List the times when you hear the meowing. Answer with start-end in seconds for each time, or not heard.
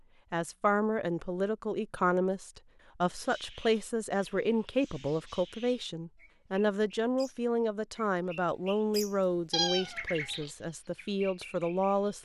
9.5-10.5.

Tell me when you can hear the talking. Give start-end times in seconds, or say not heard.
0.3-12.2.